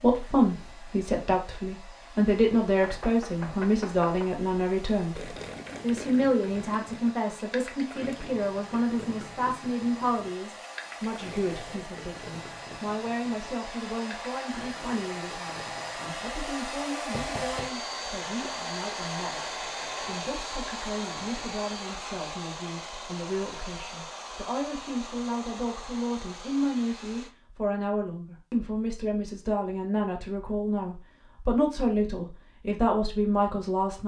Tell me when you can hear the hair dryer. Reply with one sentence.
The hair dryer can be heard from 0.0 to 27.4 s.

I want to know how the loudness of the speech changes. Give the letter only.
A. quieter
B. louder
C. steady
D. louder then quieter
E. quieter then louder
E.